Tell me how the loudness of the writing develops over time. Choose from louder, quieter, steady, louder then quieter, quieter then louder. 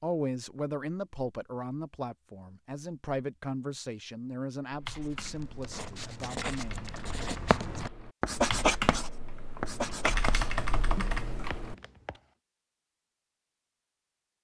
louder then quieter.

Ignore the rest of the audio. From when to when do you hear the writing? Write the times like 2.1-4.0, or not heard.
5.0-12.2.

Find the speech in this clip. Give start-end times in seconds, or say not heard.
0.0-6.9.